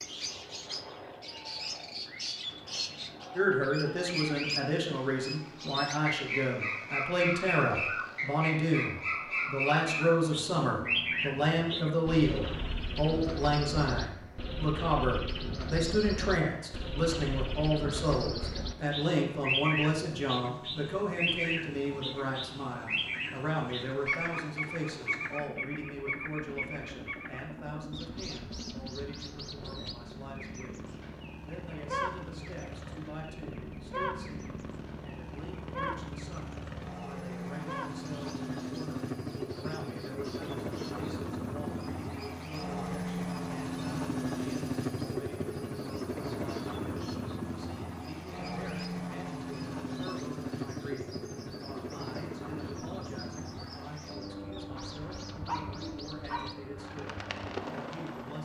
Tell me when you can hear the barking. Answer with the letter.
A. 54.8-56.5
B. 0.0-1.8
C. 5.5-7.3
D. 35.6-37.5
A.